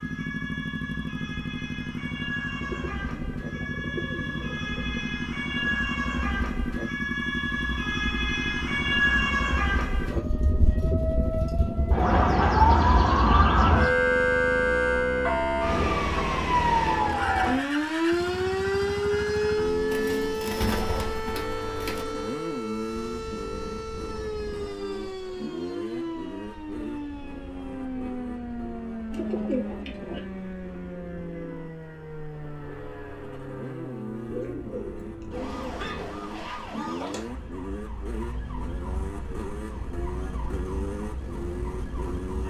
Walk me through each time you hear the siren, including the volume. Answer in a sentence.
You can hear the siren from 0.0 to 42.4 s, getting louder then quieter.